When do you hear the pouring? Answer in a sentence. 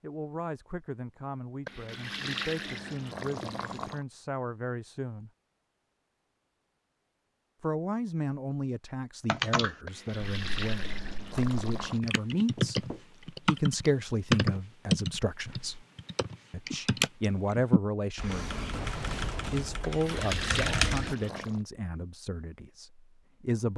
You can hear the pouring from 1.6 to 4.0 s, from 9.8 to 12.0 s and from 19.8 to 21.6 s.